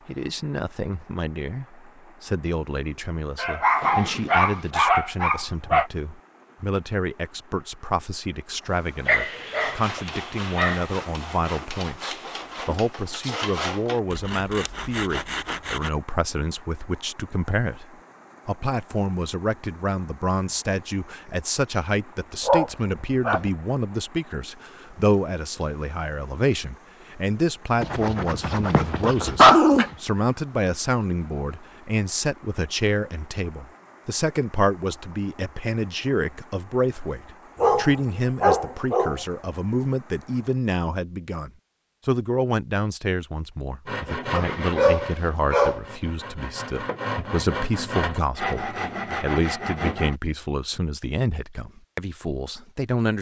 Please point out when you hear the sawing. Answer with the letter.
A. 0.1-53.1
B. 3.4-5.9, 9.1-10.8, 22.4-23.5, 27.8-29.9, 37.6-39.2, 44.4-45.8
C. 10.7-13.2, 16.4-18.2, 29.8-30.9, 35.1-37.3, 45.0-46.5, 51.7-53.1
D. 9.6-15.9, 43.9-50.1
D.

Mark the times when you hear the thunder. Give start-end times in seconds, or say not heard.
not heard.